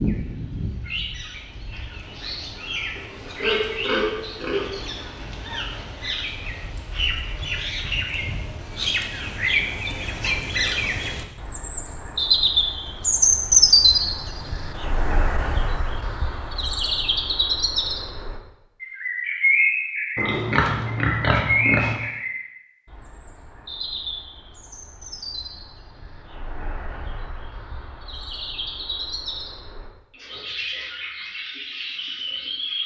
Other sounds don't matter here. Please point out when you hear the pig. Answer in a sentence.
You can hear the pig from 3.0 to 4.8 s and from 20.1 to 21.9 s.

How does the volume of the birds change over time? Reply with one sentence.
The volume of the birds goes up, then down.